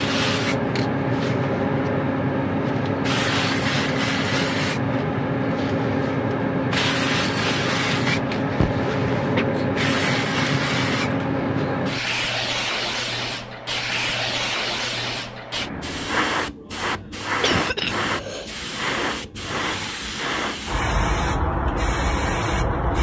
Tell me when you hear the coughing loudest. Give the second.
18 s.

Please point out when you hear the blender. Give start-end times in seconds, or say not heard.
not heard.